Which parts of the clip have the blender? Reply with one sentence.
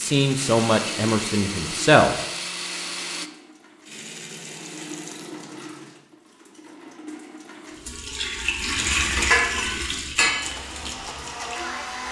The blender can be heard from 0.0 to 3.3 s and from 10.3 to 12.0 s.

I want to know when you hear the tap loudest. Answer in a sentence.
The loudest moment of the tap is at 9 seconds.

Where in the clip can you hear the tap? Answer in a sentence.
The tap can be heard from 0.0 to 12.0 s.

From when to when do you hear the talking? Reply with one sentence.
You can hear the talking from 0.0 to 2.1 s.